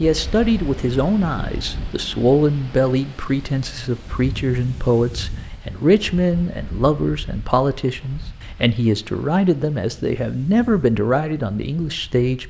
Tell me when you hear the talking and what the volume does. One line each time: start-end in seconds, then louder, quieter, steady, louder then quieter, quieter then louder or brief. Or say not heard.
0.0-12.4 steady.